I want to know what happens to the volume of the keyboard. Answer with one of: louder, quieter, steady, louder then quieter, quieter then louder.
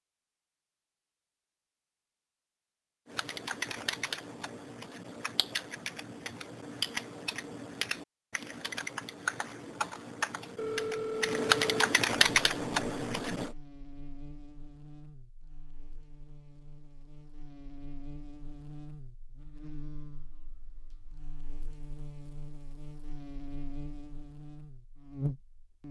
louder.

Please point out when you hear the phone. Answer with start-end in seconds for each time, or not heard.
10.6-11.9.